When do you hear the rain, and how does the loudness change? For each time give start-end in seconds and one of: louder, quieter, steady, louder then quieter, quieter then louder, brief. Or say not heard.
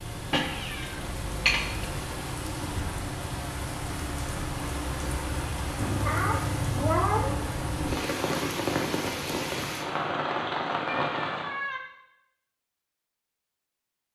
0.0-11.6 louder.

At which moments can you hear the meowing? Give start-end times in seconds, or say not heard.
0.3-1.9, 5.8-7.3, 10.8-11.8.